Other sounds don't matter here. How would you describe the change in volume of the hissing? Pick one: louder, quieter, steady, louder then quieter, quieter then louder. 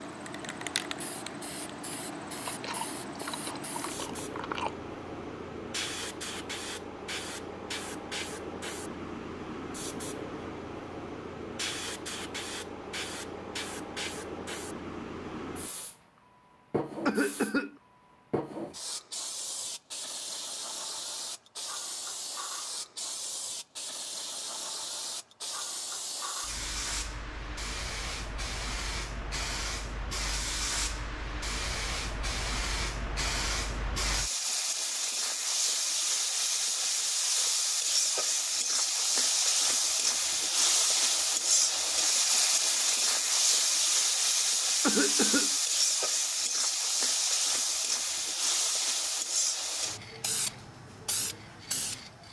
louder.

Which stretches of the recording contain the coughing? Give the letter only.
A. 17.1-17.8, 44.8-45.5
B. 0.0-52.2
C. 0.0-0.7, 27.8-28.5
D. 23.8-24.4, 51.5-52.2
A.